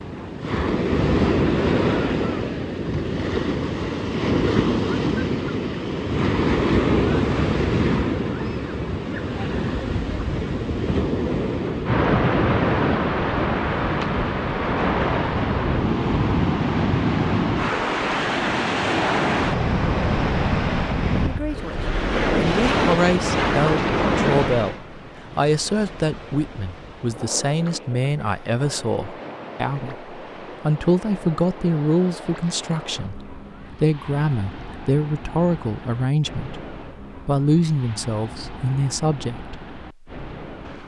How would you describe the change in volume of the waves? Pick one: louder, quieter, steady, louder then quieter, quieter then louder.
quieter.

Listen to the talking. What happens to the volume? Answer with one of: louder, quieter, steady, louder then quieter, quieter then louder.
steady.